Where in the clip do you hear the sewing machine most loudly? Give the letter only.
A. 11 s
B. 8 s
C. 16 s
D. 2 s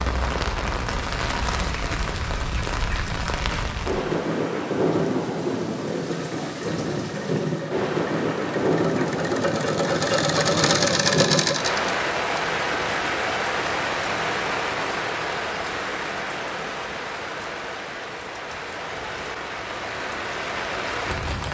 A.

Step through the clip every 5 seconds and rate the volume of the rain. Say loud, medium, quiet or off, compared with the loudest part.
loud, loud, loud, medium, loud.